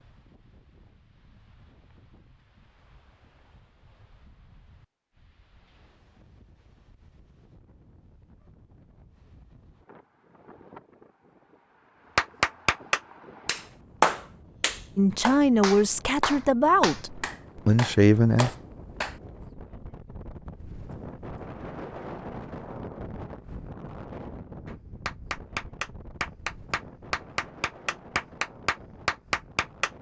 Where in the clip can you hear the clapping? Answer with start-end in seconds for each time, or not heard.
12.2-19.2, 24.6-29.9.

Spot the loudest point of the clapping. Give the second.
14 s.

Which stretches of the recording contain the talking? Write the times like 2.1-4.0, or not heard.
14.9-18.5.